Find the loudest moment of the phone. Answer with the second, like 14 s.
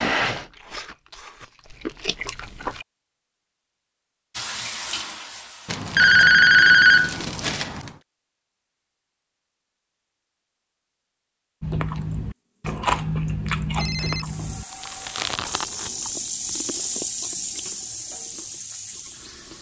7 s.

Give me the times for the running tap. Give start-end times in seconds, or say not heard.
4.3-7.4, 12.7-19.5.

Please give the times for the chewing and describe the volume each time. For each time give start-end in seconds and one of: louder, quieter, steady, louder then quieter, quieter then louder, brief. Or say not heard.
0.0-2.9 brief
11.6-19.5 quieter.